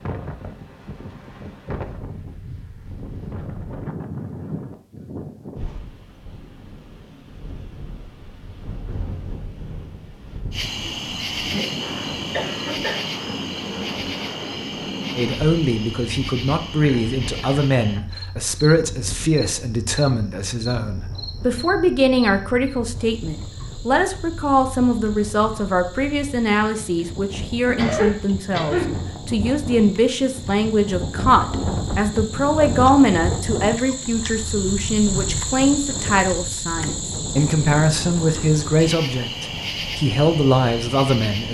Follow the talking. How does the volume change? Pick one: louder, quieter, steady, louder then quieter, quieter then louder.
steady.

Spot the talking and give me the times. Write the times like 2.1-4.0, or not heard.
15.2-41.4.